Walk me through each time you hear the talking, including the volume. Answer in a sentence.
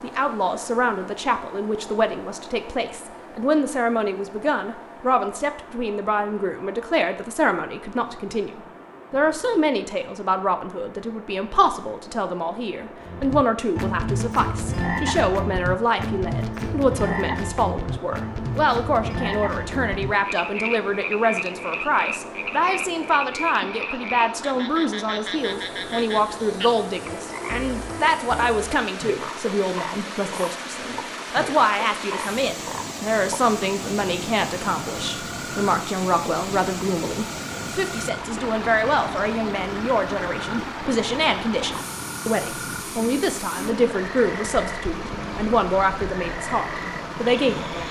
The talking can be heard from 0.0 to 47.8 s, at a steady volume.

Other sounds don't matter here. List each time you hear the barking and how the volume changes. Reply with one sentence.
The barking can't be heard in this clip.